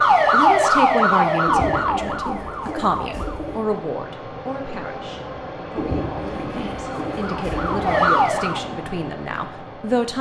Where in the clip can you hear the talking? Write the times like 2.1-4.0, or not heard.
0.1-10.1.